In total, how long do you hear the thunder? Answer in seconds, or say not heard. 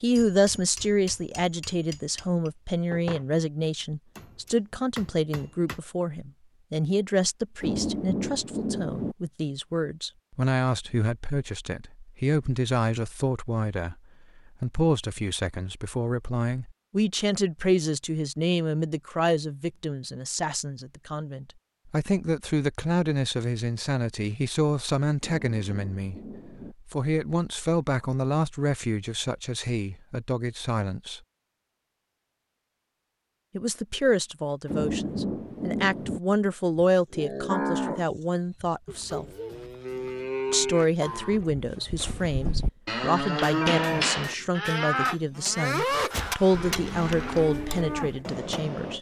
5 s.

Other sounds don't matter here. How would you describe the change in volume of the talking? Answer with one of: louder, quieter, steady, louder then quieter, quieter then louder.
steady.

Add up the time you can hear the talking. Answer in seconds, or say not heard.
44 s.